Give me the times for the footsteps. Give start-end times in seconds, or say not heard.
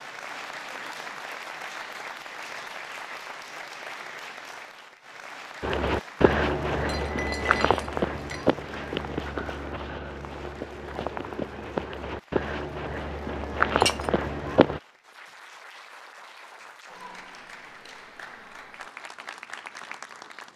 5.6-14.8.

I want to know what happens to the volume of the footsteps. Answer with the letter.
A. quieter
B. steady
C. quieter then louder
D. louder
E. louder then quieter
C.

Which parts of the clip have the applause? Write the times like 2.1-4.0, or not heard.
0.0-20.5.